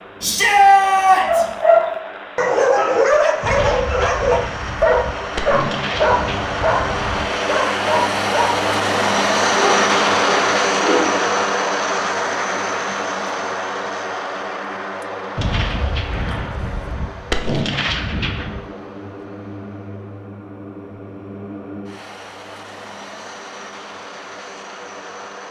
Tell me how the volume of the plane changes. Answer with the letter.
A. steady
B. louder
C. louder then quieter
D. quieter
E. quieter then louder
C.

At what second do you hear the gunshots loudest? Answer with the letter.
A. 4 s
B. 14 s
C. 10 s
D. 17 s
D.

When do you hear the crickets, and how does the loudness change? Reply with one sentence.
You can't hear the crickets here.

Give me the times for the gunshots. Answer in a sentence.
You can hear the gunshots from 3.4 to 7.3 s and from 15.3 to 18.6 s.